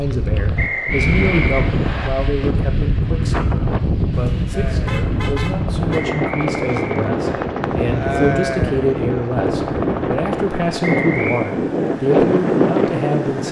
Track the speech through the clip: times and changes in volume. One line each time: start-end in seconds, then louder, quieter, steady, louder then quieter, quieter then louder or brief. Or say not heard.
0.0-13.4 quieter then louder.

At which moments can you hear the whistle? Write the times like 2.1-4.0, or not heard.
0.6-2.1, 5.9-7.5, 10.8-11.5.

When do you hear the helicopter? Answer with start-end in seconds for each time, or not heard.
4.5-11.3.